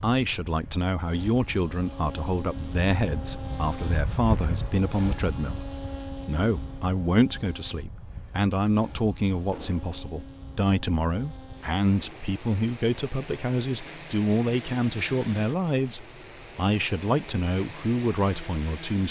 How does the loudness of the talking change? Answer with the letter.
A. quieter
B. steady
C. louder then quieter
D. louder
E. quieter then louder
B.